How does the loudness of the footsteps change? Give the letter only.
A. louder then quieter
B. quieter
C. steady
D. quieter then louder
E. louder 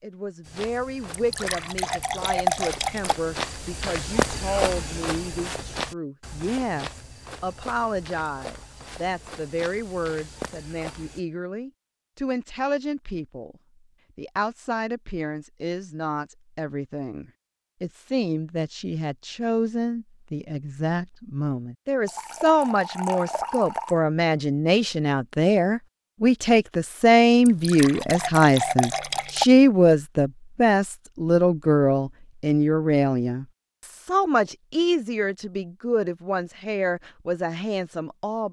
A.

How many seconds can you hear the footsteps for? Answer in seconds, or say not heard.
11 s.